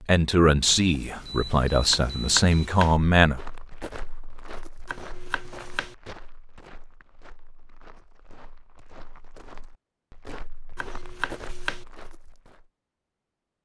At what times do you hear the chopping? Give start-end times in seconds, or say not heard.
1.9-3.0, 4.8-6.0, 10.8-11.8.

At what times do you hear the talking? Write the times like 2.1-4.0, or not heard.
0.0-3.4.